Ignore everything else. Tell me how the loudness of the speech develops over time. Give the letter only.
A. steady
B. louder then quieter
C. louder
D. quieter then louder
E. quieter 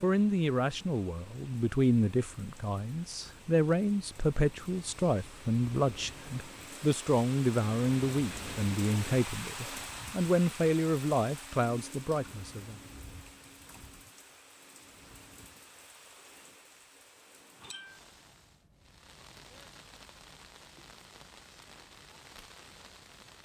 A.